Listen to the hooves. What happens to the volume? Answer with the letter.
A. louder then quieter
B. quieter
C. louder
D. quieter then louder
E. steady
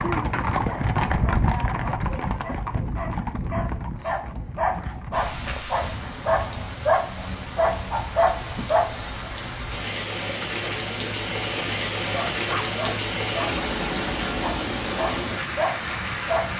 B.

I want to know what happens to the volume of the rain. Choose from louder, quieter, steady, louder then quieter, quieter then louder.
louder.